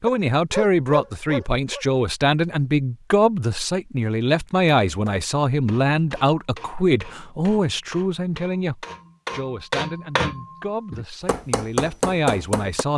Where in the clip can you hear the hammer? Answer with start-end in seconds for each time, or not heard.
4.8-12.8.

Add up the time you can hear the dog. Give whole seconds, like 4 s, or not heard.
2 s.